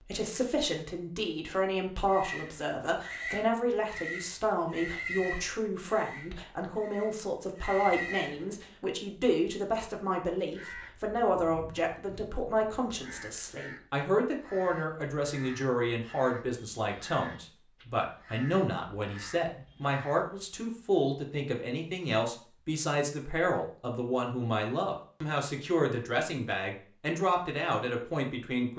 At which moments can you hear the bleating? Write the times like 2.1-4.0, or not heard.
2.0-8.5.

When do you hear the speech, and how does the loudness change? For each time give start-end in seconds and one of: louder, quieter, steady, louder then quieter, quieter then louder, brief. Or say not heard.
0.0-28.7 steady.